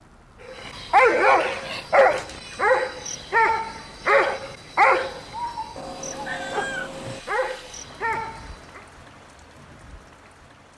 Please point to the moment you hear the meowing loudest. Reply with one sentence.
The loudest moment of the meowing is at 7 seconds.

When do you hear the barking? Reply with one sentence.
You can hear the barking from 0.5 to 8.8 s.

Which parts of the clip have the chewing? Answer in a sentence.
The chewing can't be heard in this clip.